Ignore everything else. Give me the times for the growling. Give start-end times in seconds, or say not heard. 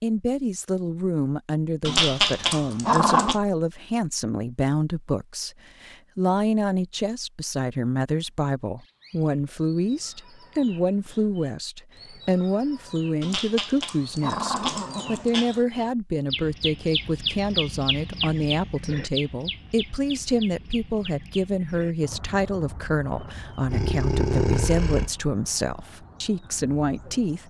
1.9-3.4, 13.2-15.6, 23.6-25.1.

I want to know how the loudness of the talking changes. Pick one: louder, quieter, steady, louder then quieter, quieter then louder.
steady.